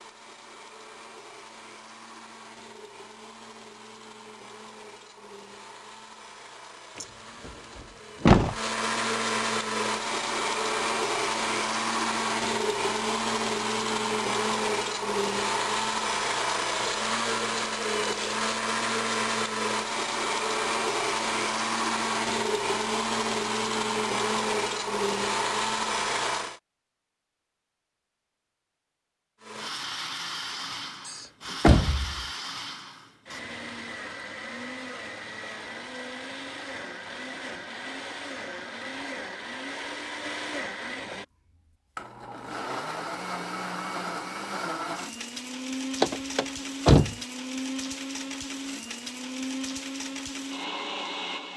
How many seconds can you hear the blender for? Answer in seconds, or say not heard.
49 s.